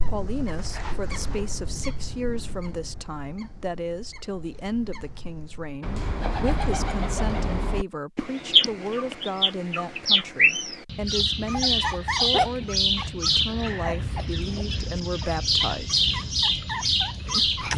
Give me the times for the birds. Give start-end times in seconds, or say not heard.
0.0-17.7.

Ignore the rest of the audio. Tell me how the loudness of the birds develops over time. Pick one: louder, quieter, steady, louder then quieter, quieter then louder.
louder.